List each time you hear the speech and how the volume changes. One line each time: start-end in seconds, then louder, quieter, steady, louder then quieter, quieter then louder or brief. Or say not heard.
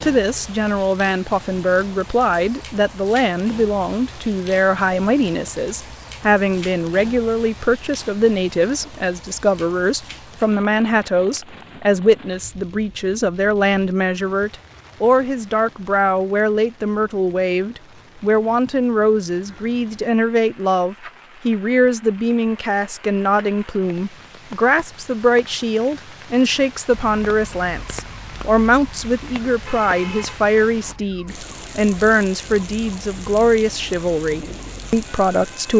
0.0-35.7 steady.